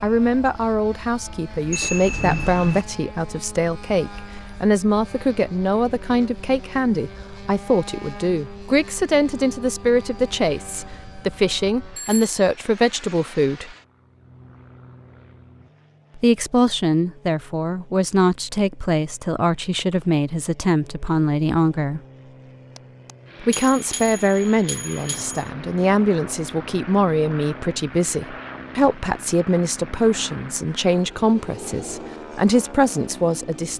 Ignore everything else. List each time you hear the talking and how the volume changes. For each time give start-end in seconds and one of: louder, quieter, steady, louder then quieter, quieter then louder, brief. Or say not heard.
0.0-13.8 steady
16.1-22.0 steady
23.4-33.7 steady.